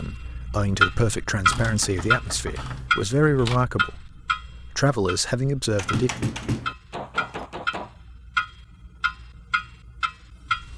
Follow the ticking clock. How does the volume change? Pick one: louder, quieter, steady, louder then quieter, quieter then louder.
quieter then louder.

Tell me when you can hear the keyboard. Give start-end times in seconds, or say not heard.
1.4-3.6, 5.8-6.8.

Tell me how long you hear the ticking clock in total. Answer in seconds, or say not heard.
11 s.